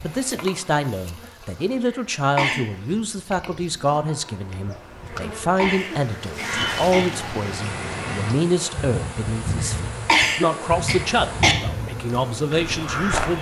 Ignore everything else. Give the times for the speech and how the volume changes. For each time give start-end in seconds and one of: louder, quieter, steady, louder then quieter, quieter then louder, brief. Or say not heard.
0.0-13.3 steady.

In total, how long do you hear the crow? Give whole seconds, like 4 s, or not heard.
7 s.